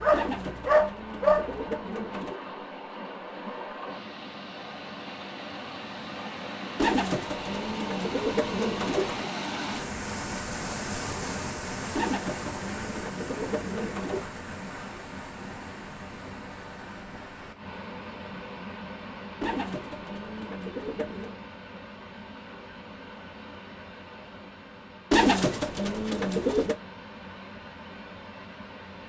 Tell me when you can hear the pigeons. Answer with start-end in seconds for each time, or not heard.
0.1-2.4, 6.8-9.3, 11.9-14.3, 19.4-21.4, 25.1-26.8.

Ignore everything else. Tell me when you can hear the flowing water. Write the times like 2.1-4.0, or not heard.
0.2-29.0.